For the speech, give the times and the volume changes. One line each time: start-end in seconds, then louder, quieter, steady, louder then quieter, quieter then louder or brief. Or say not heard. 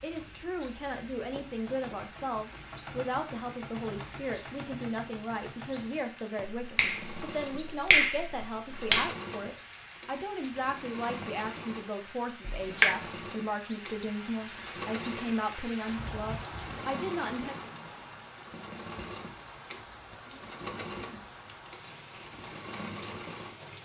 0.0-17.6 steady.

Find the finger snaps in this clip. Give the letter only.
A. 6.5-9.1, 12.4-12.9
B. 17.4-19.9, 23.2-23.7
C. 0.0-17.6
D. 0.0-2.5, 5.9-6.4
A.